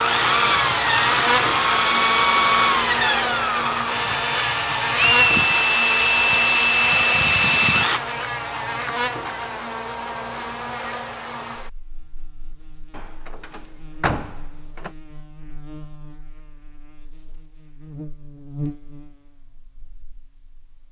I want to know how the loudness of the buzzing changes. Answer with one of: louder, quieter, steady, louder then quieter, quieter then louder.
quieter then louder.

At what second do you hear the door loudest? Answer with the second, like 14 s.
14 s.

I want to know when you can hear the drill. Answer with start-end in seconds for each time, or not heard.
0.0-8.0.